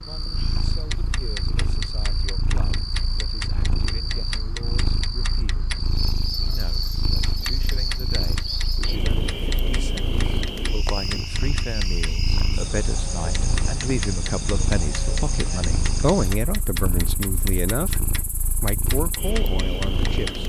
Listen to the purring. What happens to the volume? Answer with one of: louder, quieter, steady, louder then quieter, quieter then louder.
steady.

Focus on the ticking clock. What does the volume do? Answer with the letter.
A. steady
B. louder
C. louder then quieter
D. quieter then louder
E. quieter
A.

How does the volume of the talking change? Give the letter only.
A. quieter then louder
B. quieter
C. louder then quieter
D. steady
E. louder
E.